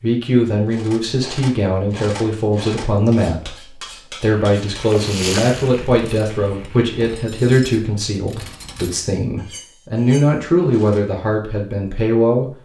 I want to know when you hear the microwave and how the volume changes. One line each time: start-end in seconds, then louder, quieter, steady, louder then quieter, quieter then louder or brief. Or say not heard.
not heard.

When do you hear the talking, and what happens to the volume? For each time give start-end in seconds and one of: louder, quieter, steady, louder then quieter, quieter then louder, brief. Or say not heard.
0.0-12.6 steady.